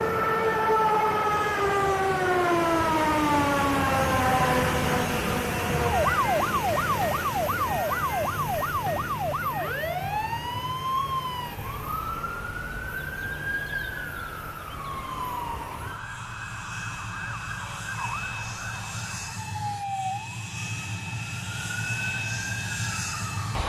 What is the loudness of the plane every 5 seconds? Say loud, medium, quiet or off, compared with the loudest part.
loud, loud, medium, medium, loud.